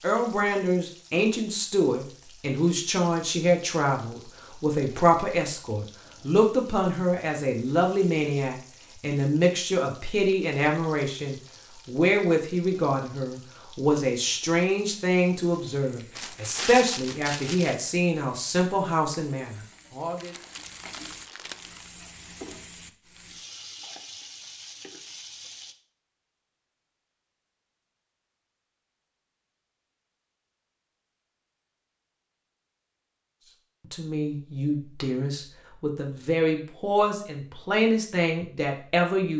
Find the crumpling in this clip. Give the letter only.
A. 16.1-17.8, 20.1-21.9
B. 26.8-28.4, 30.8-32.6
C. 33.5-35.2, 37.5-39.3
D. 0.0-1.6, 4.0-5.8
A.